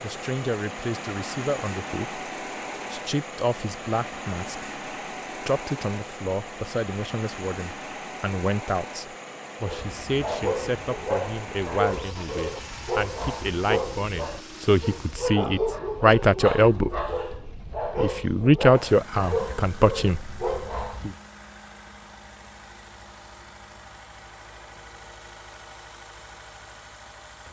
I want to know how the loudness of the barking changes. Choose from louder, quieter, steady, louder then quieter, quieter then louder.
steady.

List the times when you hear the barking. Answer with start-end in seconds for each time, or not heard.
9.7-21.1.